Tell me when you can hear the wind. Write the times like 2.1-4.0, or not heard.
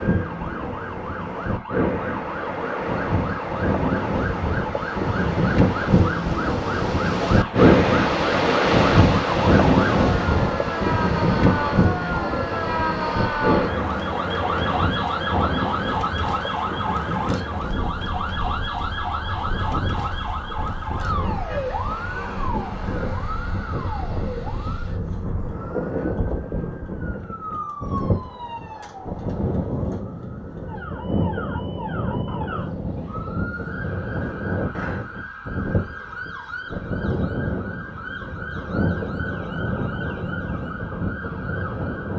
0.0-42.1.